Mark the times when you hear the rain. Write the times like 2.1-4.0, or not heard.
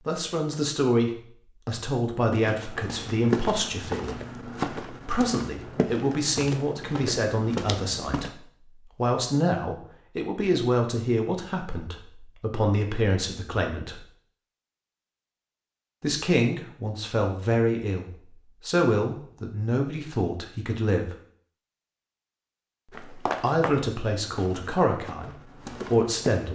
not heard.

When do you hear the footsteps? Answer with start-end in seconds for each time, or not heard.
2.3-8.3, 22.9-26.5.